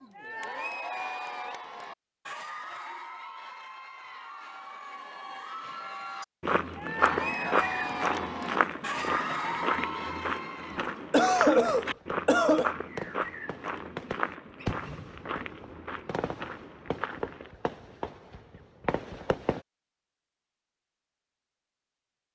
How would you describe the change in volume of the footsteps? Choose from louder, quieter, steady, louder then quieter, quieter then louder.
quieter.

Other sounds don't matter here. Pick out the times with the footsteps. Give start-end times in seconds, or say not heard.
6.4-17.5.